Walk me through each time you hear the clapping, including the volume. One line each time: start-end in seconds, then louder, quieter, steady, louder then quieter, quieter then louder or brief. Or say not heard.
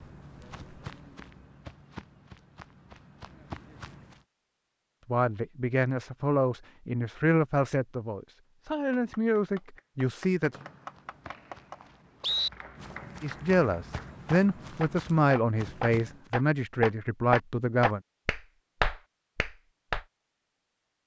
8.7-20.0 louder.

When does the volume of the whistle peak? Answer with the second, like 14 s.
12 s.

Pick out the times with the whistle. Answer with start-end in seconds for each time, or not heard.
10.5-12.5.